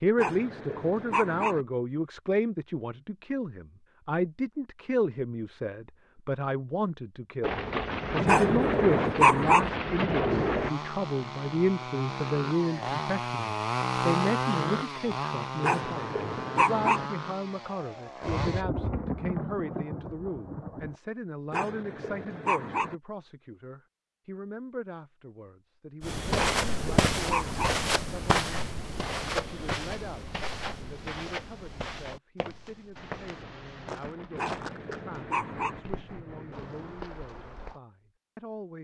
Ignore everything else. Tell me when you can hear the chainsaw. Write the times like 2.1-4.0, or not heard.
10.3-18.6.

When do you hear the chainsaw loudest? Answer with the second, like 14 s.
14 s.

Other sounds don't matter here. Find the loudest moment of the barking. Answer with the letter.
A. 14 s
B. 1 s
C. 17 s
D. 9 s
D.